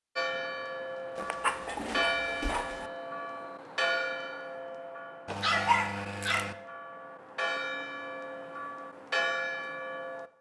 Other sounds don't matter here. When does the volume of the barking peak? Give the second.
6 s.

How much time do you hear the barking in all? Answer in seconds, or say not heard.
3 s.